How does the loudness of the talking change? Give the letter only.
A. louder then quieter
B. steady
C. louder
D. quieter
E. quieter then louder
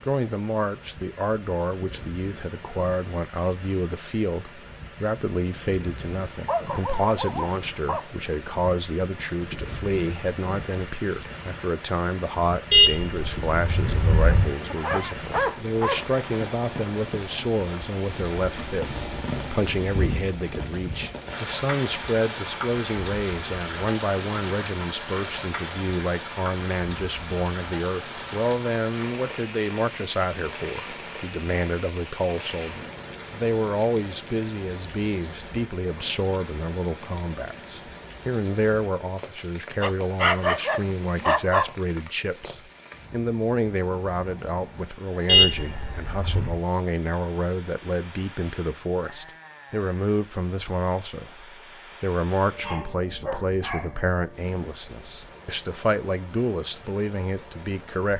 B.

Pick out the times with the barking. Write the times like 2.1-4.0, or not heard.
6.5-8.1, 14.7-16.1, 39.8-41.6, 52.6-54.0.